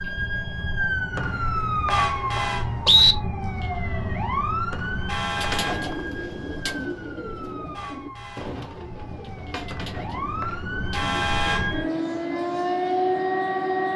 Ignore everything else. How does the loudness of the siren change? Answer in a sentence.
The loudness of the siren goes down, then up.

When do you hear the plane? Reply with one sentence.
You can't hear the plane here.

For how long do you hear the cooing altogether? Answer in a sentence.
The cooing can be heard for 7 seconds in total.